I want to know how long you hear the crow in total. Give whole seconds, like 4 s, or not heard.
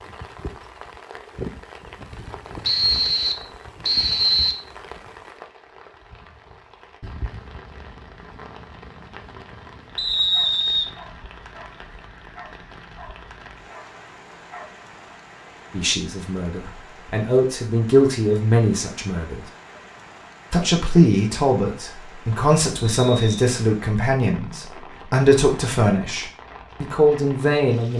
not heard.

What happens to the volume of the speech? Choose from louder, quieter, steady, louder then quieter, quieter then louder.
steady.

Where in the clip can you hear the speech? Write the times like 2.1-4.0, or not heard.
15.7-19.4, 20.5-27.9.